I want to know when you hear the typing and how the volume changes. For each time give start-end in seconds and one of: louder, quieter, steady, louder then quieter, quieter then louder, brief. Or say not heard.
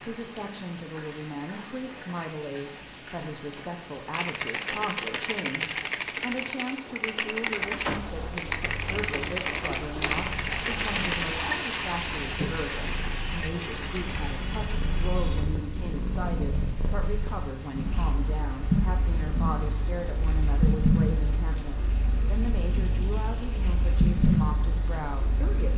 4.1-11.2 steady.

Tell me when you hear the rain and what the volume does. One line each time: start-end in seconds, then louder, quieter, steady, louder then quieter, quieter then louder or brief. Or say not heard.
0.0-25.7 louder then quieter.